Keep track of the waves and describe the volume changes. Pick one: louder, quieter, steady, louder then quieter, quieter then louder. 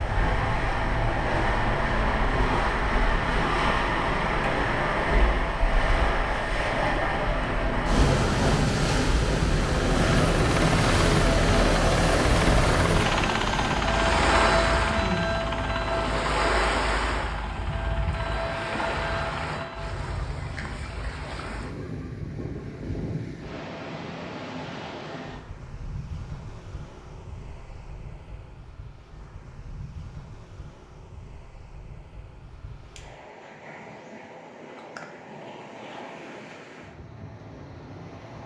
quieter.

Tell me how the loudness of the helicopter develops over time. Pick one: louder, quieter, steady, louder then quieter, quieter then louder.
quieter.